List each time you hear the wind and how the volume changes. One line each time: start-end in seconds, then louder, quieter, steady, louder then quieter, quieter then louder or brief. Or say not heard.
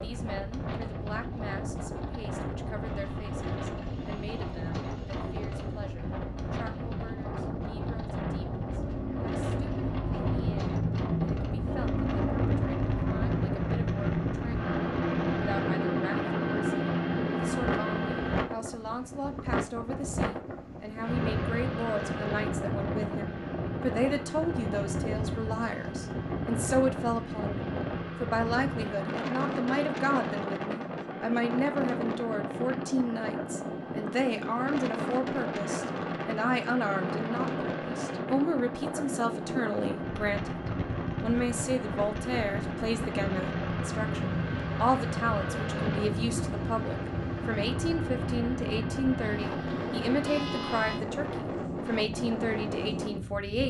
0.0-53.6 steady.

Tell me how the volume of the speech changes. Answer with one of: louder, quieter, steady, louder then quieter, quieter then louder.
louder.